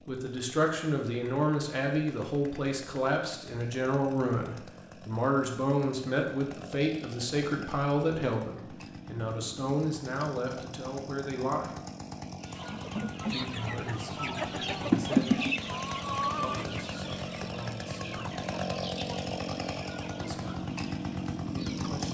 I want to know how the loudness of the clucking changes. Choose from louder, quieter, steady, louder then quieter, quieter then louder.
louder then quieter.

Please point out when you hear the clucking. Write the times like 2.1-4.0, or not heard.
12.4-22.1.